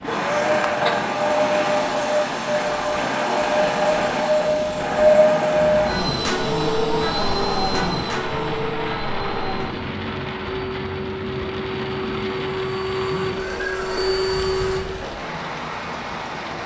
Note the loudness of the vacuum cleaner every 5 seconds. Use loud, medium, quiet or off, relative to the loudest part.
loud, loud, medium, off.